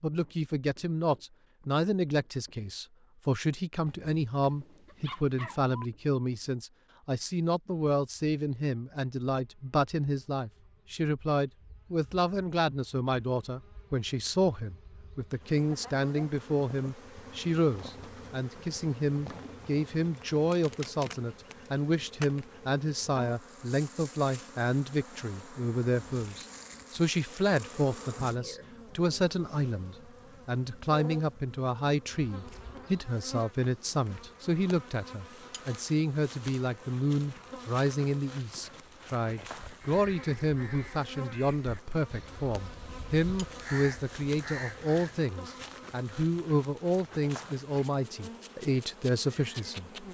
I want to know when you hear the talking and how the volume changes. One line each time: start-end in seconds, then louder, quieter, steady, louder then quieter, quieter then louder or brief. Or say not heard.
0.0-50.0 steady.